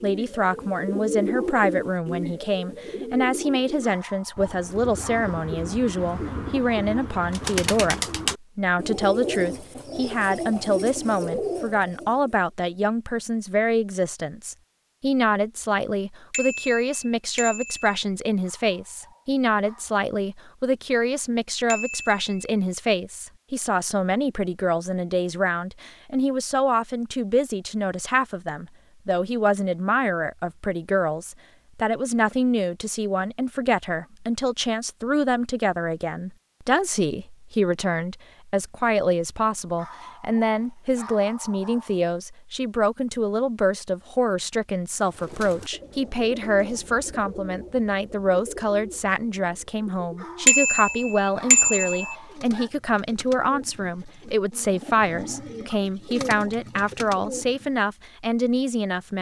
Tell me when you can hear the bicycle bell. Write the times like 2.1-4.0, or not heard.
16.3-18.0, 21.7-22.4, 50.5-52.1.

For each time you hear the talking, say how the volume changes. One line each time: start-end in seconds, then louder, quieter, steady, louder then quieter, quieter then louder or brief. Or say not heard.
0.0-59.1 steady.